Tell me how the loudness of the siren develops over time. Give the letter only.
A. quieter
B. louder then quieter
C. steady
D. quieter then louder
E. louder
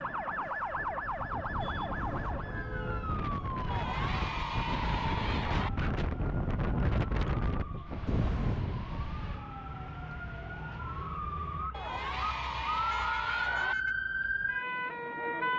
D.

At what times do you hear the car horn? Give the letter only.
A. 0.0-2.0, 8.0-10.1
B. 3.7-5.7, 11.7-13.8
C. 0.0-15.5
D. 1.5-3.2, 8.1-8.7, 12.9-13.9
D.